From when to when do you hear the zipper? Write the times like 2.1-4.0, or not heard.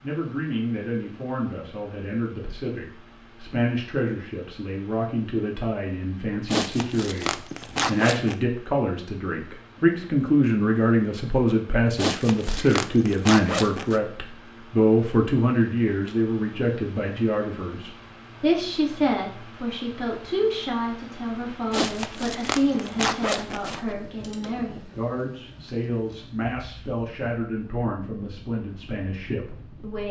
6.5-8.3, 11.9-14.0, 21.7-23.9.